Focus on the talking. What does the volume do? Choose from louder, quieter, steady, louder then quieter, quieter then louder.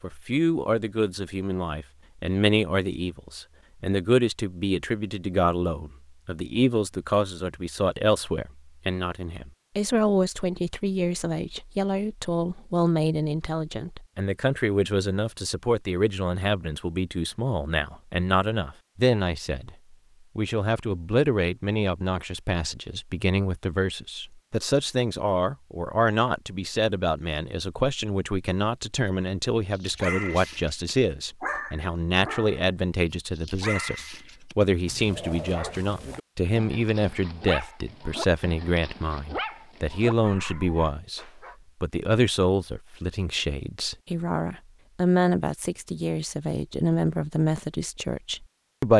steady.